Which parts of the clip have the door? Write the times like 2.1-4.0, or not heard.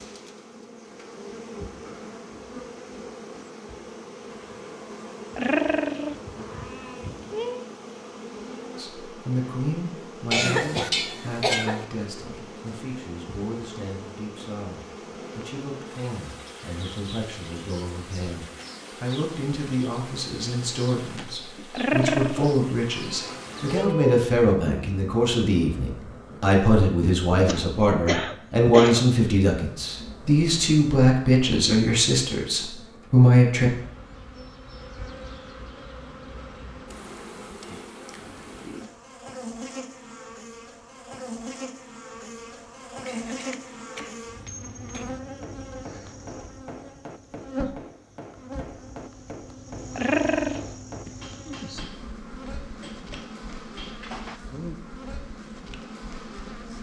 not heard.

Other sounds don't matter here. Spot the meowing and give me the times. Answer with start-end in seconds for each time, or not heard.
5.3-7.7, 21.7-24.2, 50.0-50.6.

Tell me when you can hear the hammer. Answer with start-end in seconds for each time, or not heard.
43.3-54.4.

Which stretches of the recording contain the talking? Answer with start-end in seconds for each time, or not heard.
8.8-33.7.